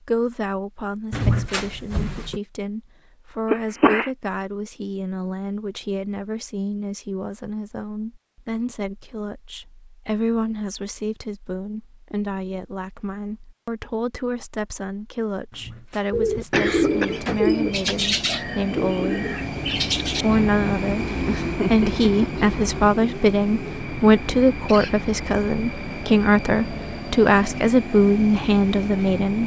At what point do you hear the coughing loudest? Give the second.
4 s.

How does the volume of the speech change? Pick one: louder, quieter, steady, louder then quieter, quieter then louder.
louder.